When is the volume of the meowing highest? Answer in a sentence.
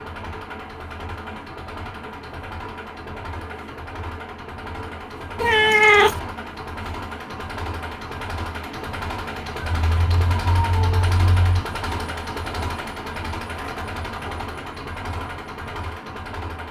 The volume of the meowing peaks at 6 seconds.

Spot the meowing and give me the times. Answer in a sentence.
You can hear the meowing from 5.3 to 6.2 s and from 9.6 to 11.6 s.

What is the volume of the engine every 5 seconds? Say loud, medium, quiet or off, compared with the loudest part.
medium, loud, loud, loud.